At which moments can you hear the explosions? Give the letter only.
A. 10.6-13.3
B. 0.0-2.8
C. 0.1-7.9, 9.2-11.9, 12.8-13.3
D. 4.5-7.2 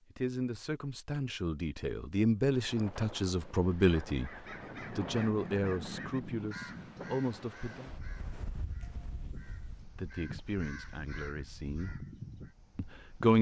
D.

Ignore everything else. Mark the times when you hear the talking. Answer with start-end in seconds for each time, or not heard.
0.1-7.9, 9.2-11.9, 12.8-13.3.